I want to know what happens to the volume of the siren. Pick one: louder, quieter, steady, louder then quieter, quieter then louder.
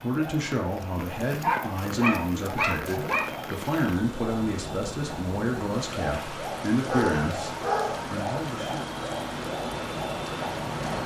louder.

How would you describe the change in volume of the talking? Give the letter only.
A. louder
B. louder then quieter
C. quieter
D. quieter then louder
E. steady
E.